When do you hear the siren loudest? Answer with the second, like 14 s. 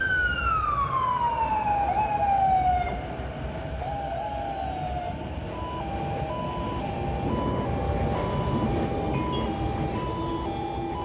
2 s.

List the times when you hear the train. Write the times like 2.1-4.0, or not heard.
0.0-10.9.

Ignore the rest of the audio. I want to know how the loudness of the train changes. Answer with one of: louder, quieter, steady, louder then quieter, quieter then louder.
louder.